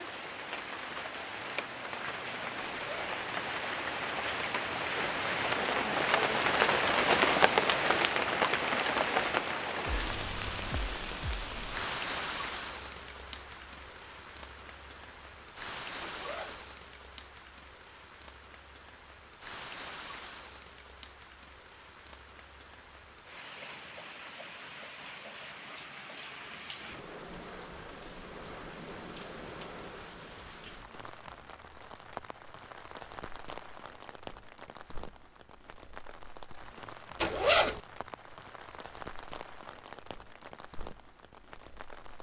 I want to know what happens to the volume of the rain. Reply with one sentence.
The volume of the rain goes down.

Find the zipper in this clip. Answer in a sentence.
The zipper can be heard from 2.8 to 3.2 s, from 16.0 to 16.6 s and from 37.2 to 37.8 s.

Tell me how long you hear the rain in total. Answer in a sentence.
The rain can be heard for 42 seconds in total.